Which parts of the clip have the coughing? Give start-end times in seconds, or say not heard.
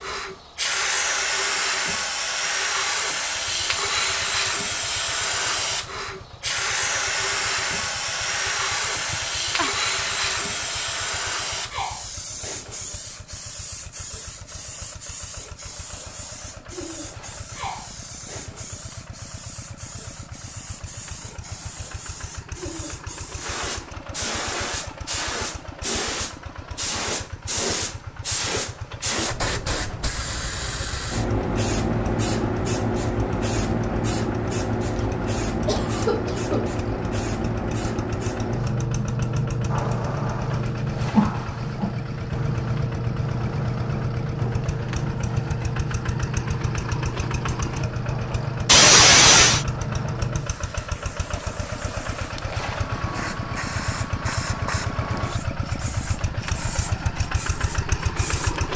9.1-9.8, 35.6-36.8, 48.6-49.6.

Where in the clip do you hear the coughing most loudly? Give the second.
49 s.